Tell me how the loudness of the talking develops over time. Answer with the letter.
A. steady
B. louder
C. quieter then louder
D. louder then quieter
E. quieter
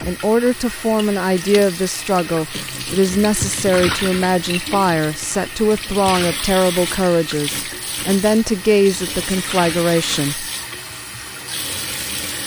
A.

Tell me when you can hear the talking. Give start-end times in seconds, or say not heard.
0.1-10.4.